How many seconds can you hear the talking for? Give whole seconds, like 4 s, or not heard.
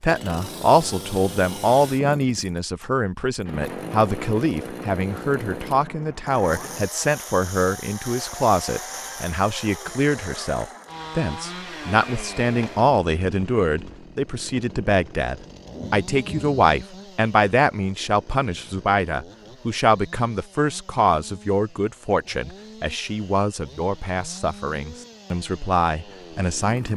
27 s.